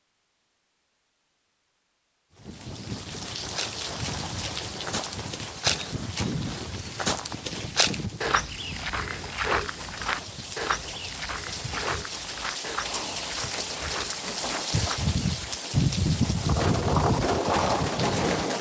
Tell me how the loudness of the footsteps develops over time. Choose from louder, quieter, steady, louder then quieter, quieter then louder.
quieter.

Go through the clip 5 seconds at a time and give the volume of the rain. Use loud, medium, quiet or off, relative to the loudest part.
medium, quiet, medium, loud.